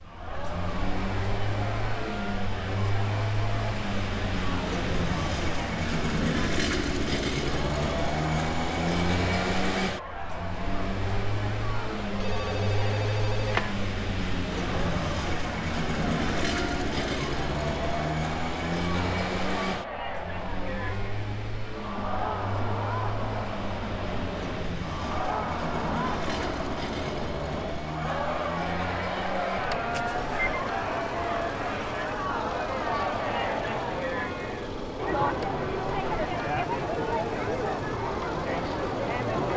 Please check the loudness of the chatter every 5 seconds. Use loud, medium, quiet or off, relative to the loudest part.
medium, medium, medium, medium, medium, loud, loud, loud.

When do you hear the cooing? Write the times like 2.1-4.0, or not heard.
not heard.